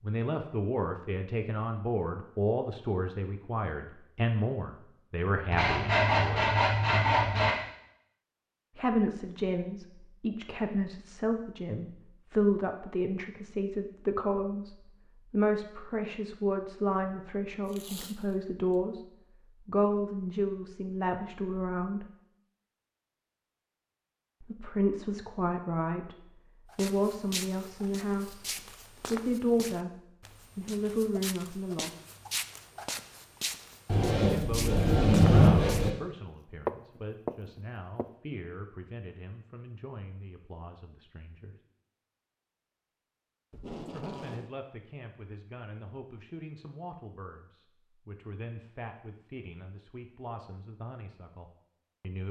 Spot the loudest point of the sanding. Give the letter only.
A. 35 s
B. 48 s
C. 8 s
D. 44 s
A.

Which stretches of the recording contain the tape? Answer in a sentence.
You can hear the tape from 17.6 to 18.8 s and from 43.5 to 44.5 s.